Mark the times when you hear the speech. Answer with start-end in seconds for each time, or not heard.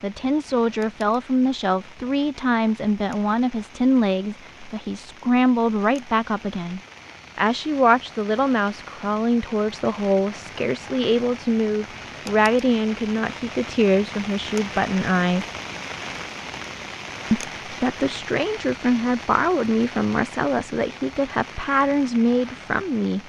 0.0-15.4, 17.3-23.2.